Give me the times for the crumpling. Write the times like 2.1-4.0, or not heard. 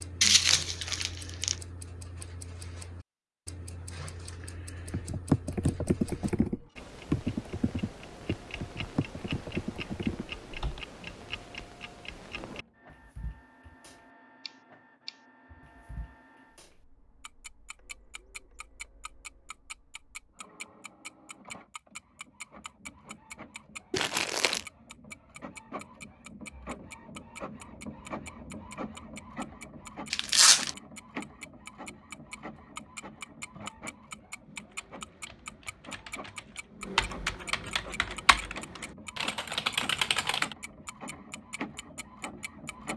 0.2-1.6, 23.9-24.6, 30.1-30.7.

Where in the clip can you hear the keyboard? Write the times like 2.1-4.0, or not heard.
4.8-10.8, 34.5-40.5.